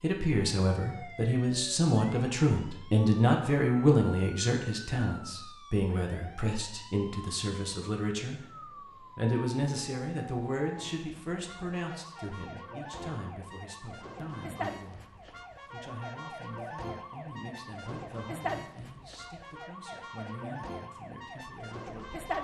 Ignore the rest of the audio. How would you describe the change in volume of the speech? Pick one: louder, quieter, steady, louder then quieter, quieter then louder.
quieter.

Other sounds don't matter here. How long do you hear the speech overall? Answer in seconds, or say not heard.
22 s.